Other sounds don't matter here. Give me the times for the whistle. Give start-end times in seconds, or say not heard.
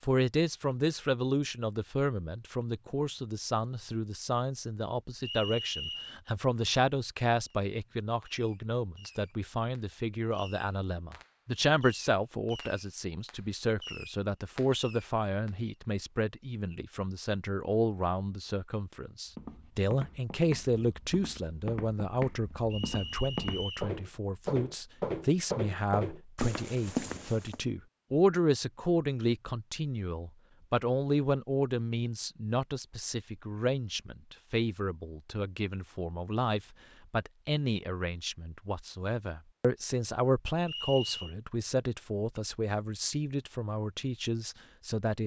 5.2-6.2, 22.7-23.9, 40.6-41.4.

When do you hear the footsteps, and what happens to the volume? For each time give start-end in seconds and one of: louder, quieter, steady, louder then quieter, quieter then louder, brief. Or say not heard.
19.2-27.6 louder.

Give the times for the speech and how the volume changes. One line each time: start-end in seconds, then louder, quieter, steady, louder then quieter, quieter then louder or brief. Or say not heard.
0.0-45.2 steady.